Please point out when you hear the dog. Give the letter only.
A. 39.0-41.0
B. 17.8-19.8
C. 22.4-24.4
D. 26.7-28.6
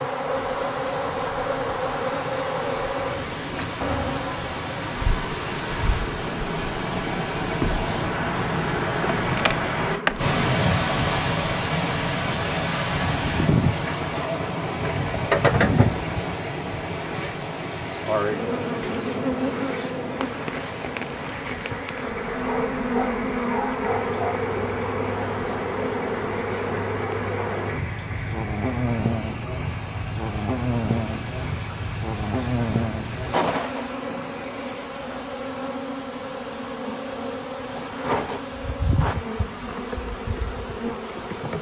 C.